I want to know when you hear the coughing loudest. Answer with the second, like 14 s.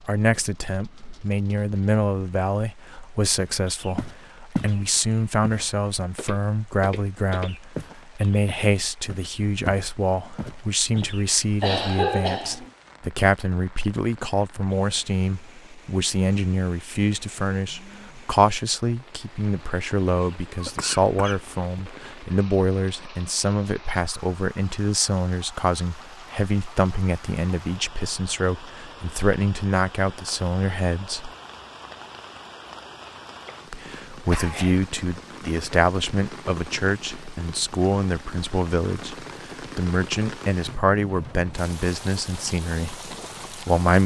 12 s.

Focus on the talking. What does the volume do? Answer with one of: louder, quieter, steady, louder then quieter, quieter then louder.
steady.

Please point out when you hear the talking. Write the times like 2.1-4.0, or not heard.
0.0-31.3, 33.7-44.0.